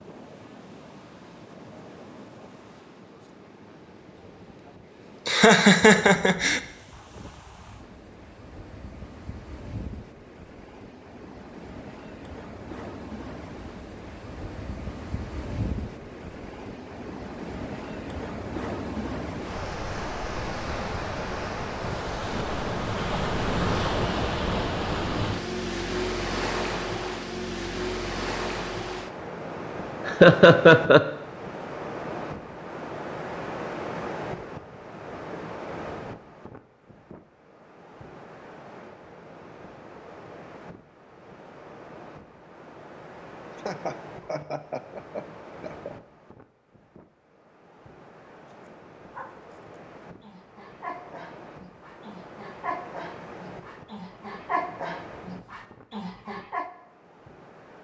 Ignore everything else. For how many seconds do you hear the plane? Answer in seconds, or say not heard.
not heard.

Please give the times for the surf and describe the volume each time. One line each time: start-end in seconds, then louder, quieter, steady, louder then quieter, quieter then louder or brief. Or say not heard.
0.0-57.8 louder then quieter.